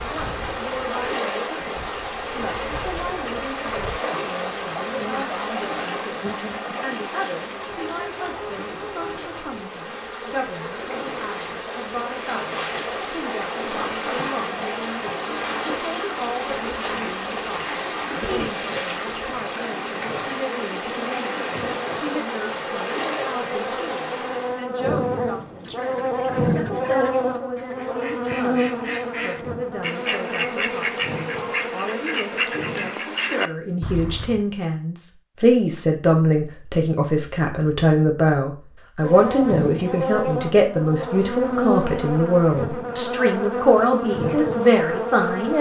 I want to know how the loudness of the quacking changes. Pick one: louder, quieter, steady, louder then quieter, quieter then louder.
louder.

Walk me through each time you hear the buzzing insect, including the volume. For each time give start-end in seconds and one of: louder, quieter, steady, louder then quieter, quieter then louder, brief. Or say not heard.
0.0-33.0 louder
39.0-45.5 steady.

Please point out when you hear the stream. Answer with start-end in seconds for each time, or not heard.
0.0-24.6.